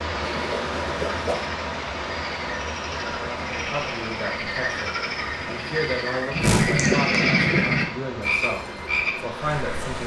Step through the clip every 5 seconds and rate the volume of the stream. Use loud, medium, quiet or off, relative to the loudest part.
loud, medium.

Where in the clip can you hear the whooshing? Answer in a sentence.
The whooshing can be heard from 0.3 to 1.4 s and from 6.4 to 6.8 s.